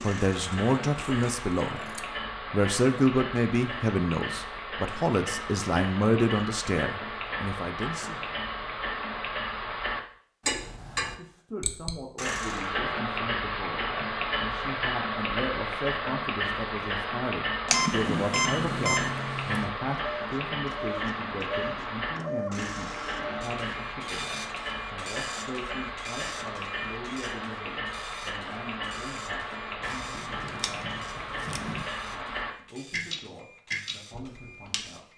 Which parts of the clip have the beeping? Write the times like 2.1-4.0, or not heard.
17.6-19.1.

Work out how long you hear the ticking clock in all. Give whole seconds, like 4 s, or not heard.
35 s.